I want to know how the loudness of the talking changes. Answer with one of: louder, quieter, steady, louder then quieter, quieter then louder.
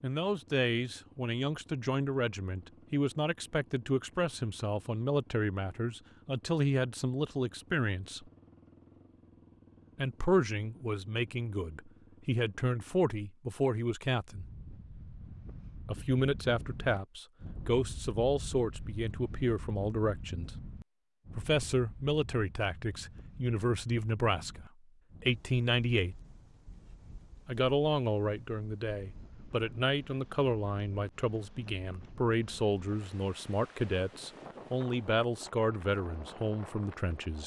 steady.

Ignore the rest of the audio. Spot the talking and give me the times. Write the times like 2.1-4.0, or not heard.
0.0-8.3, 9.9-14.4, 15.8-20.5, 21.3-26.1, 27.4-37.4.